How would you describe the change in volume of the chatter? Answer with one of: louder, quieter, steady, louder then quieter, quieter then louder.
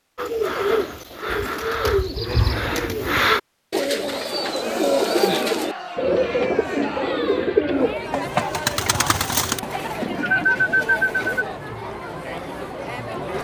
steady.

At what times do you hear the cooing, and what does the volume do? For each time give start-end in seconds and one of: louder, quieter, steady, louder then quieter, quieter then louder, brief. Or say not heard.
0.1-11.4 steady.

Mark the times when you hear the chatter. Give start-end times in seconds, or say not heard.
4.1-13.3.